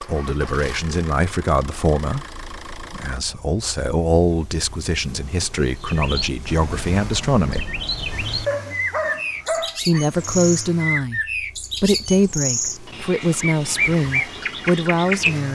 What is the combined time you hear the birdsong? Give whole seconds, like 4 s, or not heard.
10 s.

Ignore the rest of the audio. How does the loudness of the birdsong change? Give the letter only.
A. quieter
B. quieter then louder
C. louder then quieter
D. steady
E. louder
E.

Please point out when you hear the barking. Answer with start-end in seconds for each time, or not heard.
8.4-10.1.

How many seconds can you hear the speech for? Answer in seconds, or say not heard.
13 s.